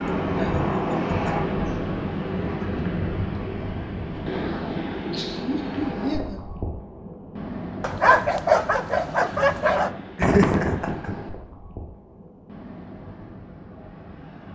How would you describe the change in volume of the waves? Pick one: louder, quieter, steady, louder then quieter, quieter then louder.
quieter.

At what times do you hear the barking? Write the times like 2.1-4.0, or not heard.
7.8-9.9.